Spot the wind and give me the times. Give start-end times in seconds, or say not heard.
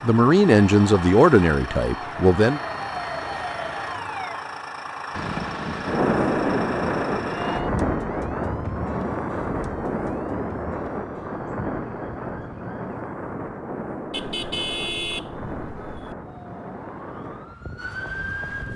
5.1-18.7.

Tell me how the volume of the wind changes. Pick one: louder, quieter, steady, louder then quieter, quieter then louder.
quieter.